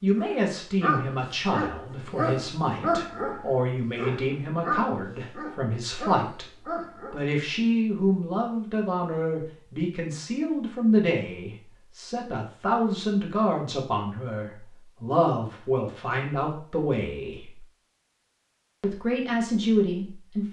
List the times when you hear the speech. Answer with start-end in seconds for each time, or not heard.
0.0-6.5, 7.1-17.6, 18.8-20.4.